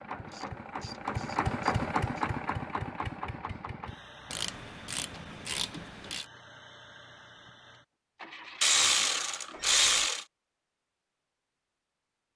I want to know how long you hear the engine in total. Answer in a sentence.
The engine can be heard for 10 seconds in total.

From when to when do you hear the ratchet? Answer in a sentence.
You can hear the ratchet from 0.2 to 2.2 s, from 4.3 to 6.2 s and from 8.6 to 10.2 s.